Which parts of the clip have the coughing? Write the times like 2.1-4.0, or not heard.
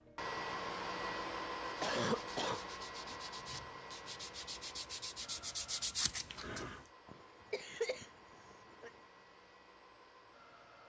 1.8-2.6, 7.0-9.0.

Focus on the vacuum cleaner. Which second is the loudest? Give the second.
1 s.